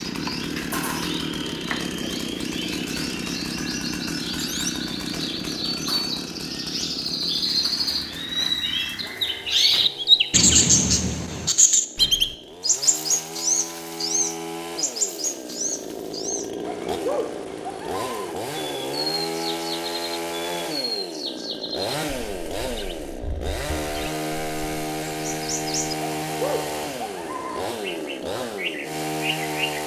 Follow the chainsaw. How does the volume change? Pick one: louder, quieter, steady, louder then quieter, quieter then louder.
quieter then louder.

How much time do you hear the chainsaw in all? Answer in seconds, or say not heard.
30 s.